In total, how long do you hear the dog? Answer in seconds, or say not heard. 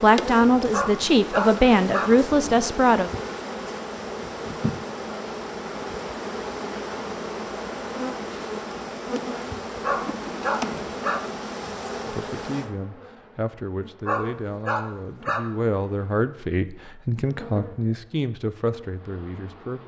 4 s.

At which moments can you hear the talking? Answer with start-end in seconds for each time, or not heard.
0.0-3.1, 12.0-19.8.